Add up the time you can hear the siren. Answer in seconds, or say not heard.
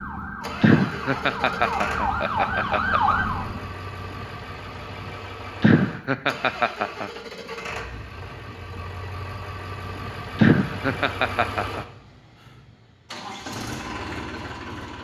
4 s.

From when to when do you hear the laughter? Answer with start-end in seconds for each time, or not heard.
0.6-3.1, 5.6-7.1, 10.3-11.8.